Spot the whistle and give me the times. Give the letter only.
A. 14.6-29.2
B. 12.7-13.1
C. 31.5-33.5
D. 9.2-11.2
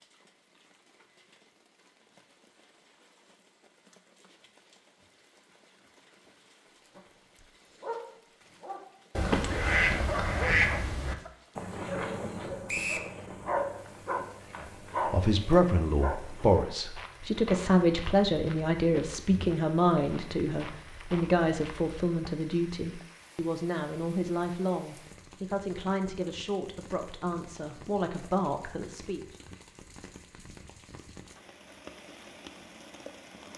B.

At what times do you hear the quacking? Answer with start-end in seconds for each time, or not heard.
9.2-11.2.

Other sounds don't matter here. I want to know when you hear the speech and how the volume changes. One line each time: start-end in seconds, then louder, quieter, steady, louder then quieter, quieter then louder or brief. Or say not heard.
14.6-29.2 quieter.